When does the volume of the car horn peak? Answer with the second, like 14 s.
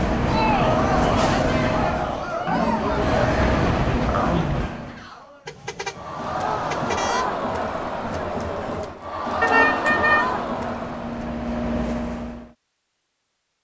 10 s.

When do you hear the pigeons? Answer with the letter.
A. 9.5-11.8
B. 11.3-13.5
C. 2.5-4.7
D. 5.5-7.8
C.